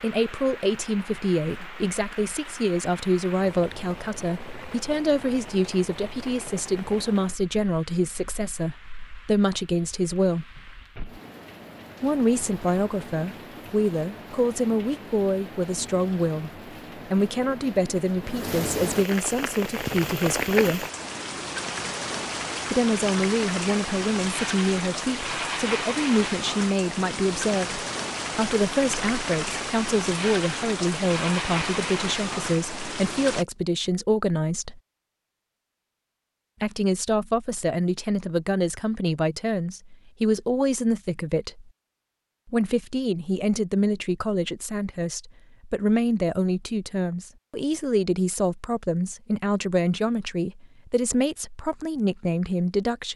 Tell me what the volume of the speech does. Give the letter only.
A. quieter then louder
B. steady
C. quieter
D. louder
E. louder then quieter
B.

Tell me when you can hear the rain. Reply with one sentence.
You can hear the rain from 0.0 to 33.5 s.